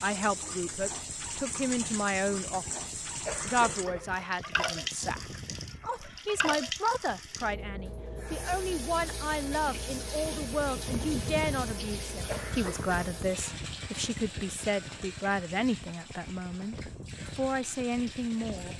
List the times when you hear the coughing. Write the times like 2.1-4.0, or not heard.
3.2-4.2, 12.2-12.9.